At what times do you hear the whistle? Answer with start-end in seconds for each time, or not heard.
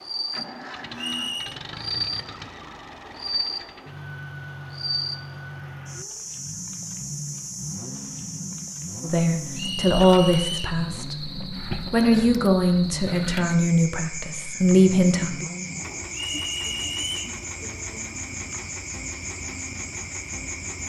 0.9-1.6, 9.6-10.8, 16.1-17.2.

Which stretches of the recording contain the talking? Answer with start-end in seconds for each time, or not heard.
9.0-15.4.